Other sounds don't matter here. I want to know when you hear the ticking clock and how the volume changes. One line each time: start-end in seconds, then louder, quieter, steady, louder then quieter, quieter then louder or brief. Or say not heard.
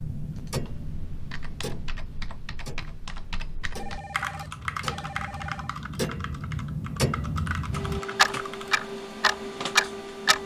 0.0-10.4 quieter then louder.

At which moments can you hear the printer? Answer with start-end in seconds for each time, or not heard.
7.7-10.4.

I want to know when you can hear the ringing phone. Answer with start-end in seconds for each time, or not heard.
3.8-5.8.